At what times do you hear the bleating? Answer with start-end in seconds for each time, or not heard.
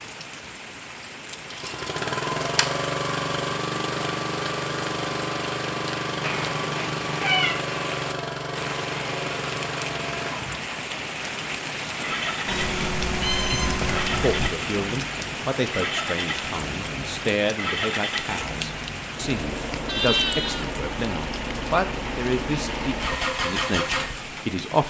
19.9-20.8.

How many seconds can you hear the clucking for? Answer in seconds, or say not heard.
not heard.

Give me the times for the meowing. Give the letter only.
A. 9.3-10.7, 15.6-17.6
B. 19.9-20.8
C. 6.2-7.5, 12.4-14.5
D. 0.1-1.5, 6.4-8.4
C.